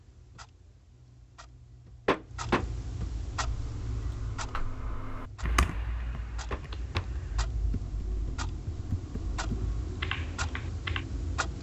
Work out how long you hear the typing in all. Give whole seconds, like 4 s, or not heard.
8 s.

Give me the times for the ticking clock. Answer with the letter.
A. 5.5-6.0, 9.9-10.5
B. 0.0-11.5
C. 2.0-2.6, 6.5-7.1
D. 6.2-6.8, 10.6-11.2
B.